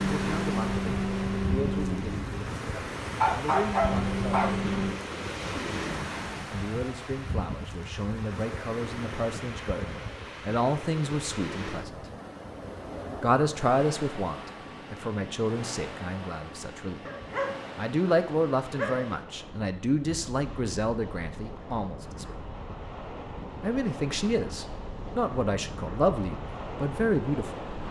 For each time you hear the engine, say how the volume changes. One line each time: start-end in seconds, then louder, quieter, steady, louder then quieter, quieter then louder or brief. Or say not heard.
0.0-5.0 quieter then louder.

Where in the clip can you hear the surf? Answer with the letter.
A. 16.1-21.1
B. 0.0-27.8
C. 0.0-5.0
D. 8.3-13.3
B.